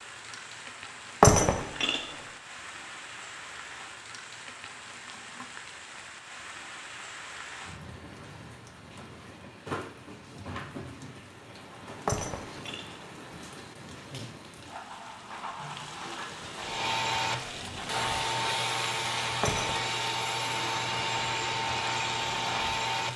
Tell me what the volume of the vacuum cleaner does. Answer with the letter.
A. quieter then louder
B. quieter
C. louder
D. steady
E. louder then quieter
D.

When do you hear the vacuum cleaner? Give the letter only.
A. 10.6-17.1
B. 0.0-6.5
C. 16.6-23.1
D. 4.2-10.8
C.